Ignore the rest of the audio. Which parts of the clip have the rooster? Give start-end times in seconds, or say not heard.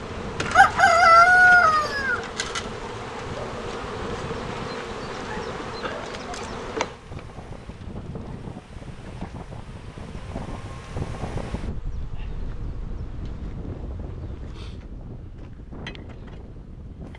0.5-2.2.